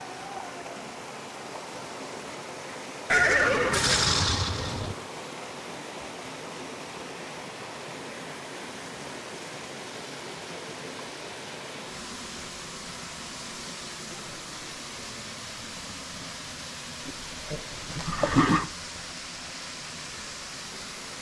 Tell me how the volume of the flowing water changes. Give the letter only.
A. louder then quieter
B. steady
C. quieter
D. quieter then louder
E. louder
B.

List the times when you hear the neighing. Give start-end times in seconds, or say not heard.
3.1-5.0, 17.1-18.7.